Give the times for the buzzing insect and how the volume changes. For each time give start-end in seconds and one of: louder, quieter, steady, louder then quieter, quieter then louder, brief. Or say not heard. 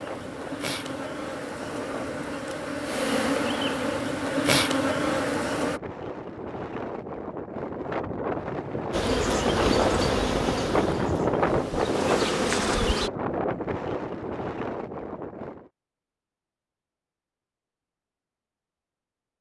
0.0-5.8 louder
8.9-13.1 quieter then louder.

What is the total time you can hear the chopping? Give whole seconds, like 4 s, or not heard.
not heard.